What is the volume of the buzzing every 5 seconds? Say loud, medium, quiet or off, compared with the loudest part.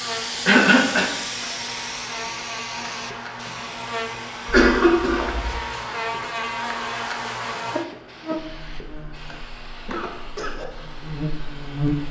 medium, loud, loud.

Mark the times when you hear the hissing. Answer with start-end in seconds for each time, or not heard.
0.0-12.0.